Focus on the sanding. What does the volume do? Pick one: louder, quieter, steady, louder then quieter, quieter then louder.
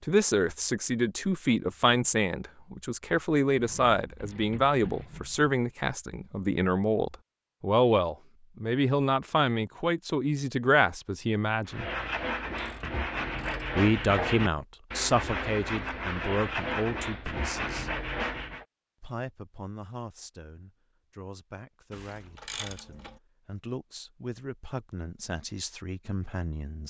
steady.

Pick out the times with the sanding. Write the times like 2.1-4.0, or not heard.
11.7-18.6.